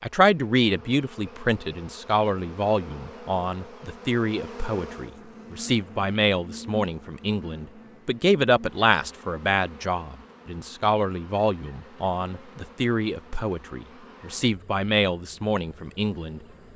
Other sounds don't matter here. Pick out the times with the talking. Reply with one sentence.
The talking can be heard from 0.0 to 16.4 s.